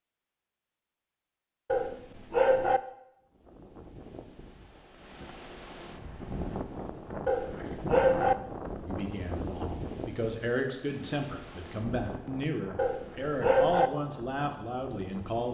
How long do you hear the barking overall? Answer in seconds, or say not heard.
3 s.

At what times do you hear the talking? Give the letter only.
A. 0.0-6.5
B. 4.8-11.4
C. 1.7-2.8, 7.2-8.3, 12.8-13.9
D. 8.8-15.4
D.